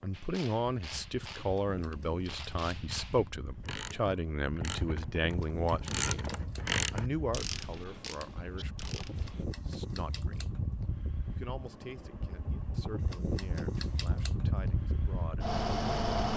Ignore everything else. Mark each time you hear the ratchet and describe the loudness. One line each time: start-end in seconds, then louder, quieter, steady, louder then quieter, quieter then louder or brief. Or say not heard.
0.1-9.4 louder then quieter.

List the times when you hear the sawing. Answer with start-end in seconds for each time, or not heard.
not heard.